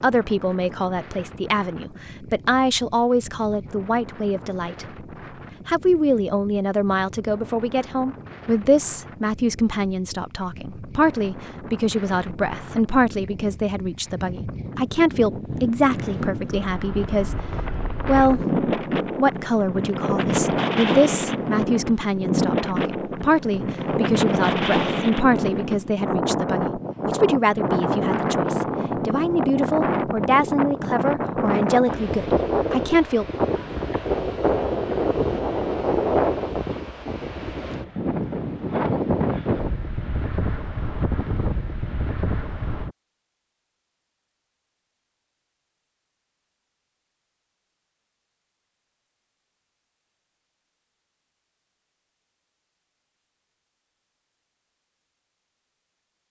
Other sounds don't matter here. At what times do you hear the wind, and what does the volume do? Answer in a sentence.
The wind can be heard from 0.0 to 43.0 s, getting louder.